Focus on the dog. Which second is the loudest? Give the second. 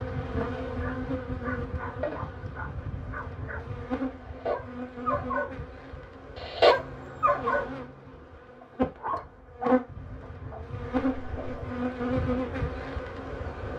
7 s.